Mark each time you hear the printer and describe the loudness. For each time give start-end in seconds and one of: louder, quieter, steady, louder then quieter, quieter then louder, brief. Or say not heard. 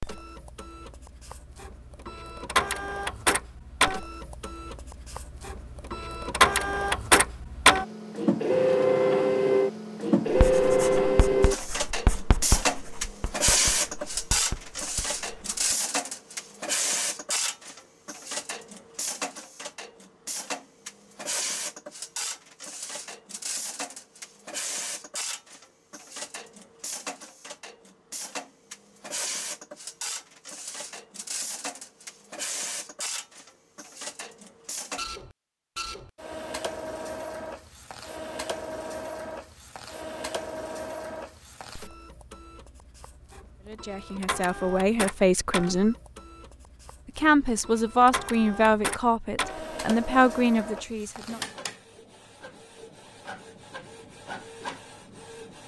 0.0-55.6 quieter.